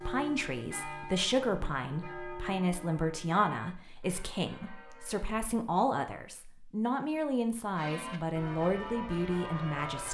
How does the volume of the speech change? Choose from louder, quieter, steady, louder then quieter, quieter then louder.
steady.